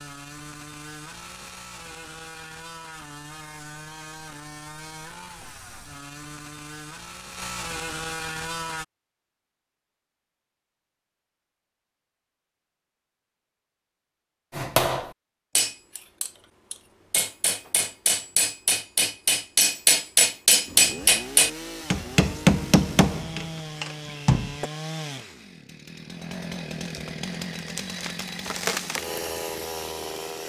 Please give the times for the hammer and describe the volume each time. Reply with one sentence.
You can hear the hammer from 14.5 to 24.7 s, getting louder.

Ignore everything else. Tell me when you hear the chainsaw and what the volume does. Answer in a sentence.
The chainsaw can be heard from 0.0 to 8.8 s, getting louder; and from 20.6 to 30.4 s, getting louder.